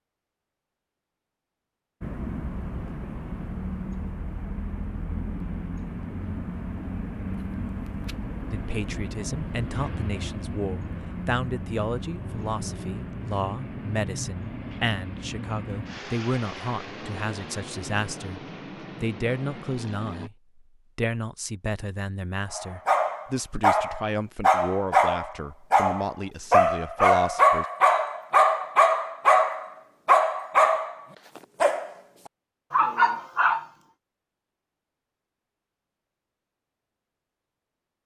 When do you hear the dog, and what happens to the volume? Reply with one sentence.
The dog can be heard from 22.6 to 31.9 s, at a steady volume; and briefly from 32.7 to 33.6 s.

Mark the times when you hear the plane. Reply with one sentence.
The plane can be heard from 2.0 to 20.3 s.